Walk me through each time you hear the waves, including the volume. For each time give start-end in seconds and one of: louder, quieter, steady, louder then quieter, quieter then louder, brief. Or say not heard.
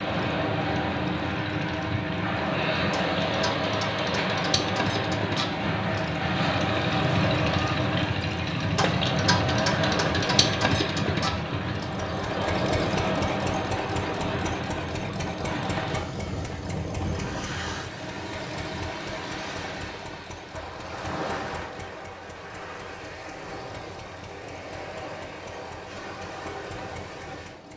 0.0-27.7 quieter.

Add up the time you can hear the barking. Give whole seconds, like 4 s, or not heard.
not heard.